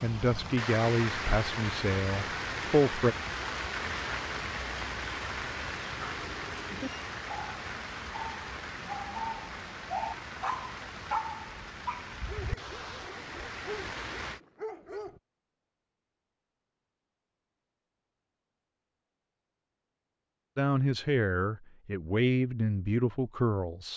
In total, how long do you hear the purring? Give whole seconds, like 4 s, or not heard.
not heard.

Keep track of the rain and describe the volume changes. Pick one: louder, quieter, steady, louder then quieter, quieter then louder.
quieter.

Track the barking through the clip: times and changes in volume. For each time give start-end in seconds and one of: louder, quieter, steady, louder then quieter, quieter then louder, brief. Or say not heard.
6.0-15.2 louder then quieter.